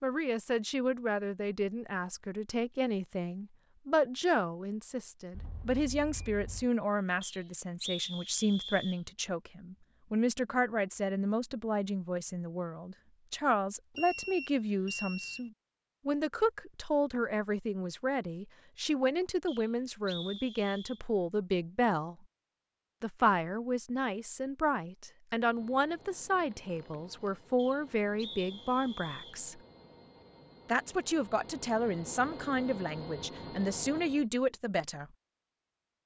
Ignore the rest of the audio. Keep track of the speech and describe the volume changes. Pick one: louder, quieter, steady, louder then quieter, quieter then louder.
steady.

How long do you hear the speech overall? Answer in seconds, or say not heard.
33 s.